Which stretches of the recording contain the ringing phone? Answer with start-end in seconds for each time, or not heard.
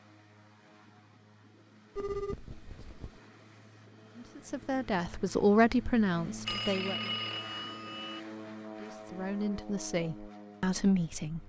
1.9-3.2, 6.5-8.2.